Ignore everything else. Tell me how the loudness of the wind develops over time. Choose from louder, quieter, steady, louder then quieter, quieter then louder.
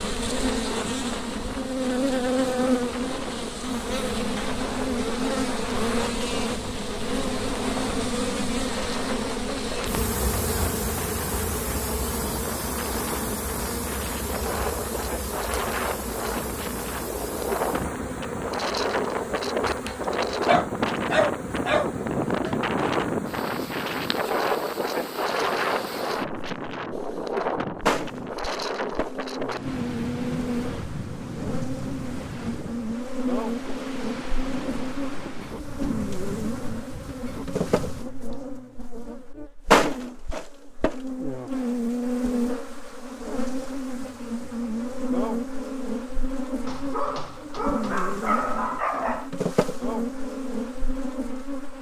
louder then quieter.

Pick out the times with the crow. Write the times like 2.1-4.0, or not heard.
not heard.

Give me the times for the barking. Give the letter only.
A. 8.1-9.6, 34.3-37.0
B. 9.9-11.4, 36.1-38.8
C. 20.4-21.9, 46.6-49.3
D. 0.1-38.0
C.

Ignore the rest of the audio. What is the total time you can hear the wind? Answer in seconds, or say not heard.
38 s.